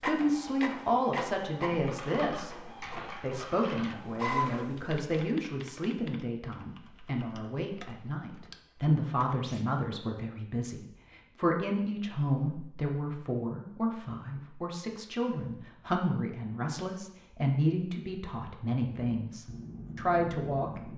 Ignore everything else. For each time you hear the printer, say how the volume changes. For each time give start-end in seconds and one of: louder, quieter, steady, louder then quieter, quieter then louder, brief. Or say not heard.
0.0-5.2 quieter then louder.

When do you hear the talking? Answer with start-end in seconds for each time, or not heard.
0.0-20.9.